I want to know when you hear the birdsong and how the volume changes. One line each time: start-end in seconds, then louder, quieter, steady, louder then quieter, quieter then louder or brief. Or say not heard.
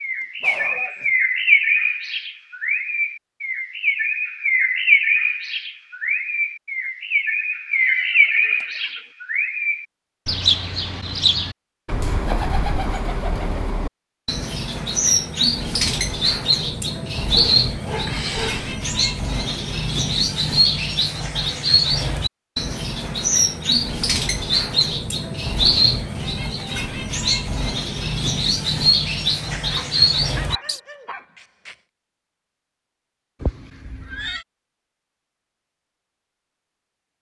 0.0-30.8 steady.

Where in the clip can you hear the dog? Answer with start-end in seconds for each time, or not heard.
0.2-1.1, 17.3-18.8, 29.5-31.8.